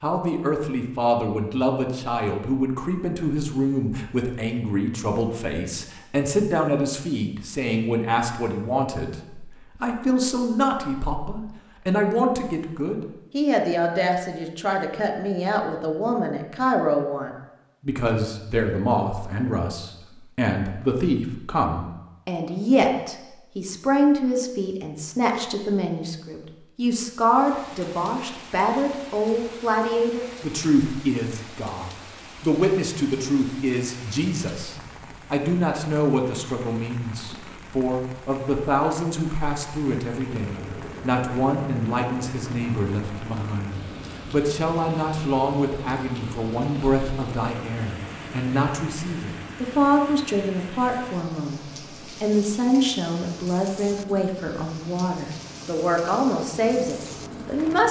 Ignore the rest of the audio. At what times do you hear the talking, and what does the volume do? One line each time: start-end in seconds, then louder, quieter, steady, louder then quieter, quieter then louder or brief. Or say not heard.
0.0-57.8 steady.